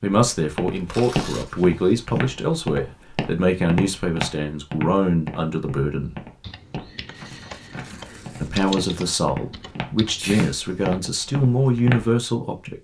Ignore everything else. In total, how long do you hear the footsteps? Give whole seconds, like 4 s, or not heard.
12 s.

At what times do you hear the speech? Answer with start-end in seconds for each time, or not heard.
0.0-6.2, 8.4-12.7.